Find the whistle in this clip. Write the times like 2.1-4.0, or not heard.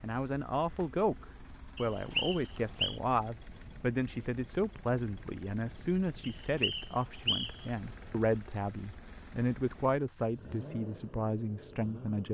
1.8-3.0, 6.2-7.7.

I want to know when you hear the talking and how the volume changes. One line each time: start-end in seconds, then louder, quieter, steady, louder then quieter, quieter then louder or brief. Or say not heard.
0.0-12.2 steady.